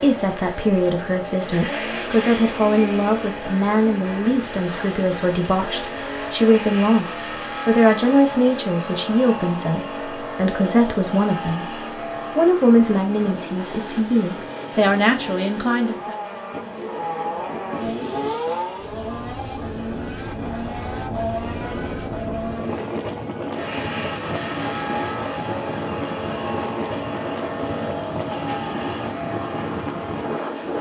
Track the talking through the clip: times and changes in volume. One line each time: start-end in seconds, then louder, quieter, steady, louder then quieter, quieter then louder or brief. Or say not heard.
0.0-16.1 steady.